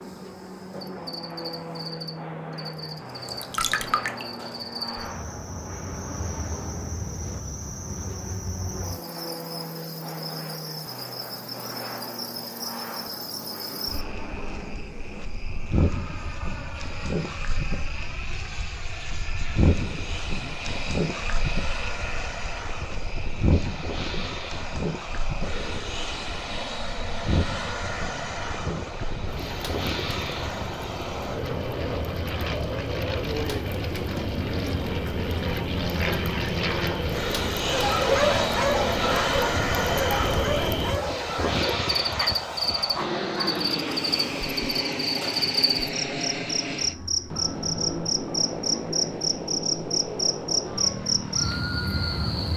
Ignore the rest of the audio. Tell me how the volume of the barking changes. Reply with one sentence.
The loudness of the barking goes down.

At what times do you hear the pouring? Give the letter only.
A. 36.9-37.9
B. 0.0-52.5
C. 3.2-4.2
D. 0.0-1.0
C.